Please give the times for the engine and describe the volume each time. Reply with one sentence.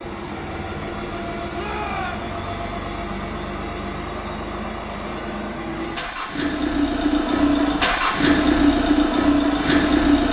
The engine can be heard from 0.0 to 10.2 s, getting louder.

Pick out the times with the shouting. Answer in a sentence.
The shouting can be heard from 1.5 to 2.4 s.